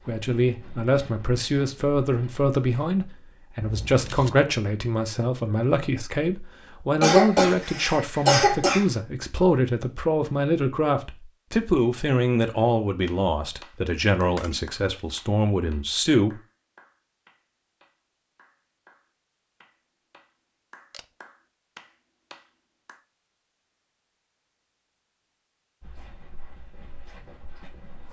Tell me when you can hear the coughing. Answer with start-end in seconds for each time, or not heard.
7.0-8.8.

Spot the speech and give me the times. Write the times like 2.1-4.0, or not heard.
0.0-16.4.